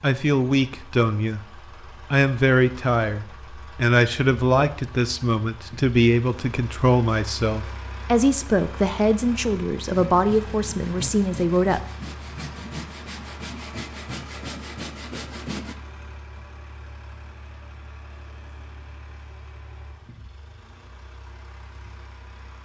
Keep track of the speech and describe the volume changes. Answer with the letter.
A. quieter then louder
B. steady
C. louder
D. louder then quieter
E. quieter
B.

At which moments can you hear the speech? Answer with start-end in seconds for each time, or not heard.
0.0-11.8.